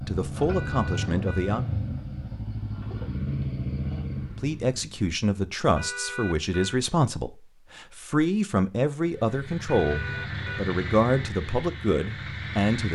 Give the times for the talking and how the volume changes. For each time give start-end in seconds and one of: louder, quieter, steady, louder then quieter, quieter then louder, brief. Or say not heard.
0.0-1.6 brief
4.4-12.9 steady.